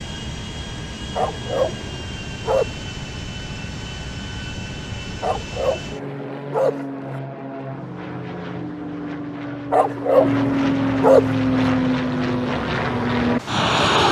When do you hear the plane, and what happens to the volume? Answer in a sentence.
You can hear the plane from 0.0 to 14.0 s, getting louder.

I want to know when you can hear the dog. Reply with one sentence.
You can hear the dog from 1.1 to 2.7 s, from 5.2 to 7.2 s and from 9.7 to 11.6 s.